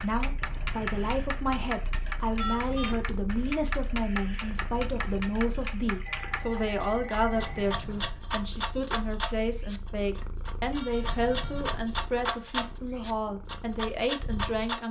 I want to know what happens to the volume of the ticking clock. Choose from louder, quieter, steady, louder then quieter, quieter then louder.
louder.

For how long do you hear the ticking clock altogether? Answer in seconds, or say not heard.
15 s.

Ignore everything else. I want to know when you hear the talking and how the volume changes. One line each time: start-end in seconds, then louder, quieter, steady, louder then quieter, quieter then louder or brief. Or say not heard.
0.0-14.8 steady.